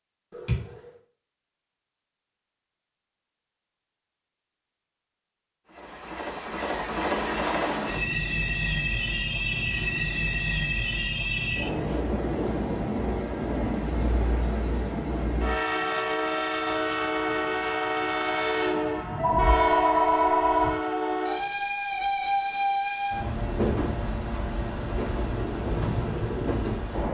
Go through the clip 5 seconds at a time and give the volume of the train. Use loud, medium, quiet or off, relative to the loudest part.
off, loud, loud, loud, loud, loud.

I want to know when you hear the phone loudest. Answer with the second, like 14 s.
20 s.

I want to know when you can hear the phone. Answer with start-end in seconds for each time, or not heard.
0.3-0.9, 19.1-20.8.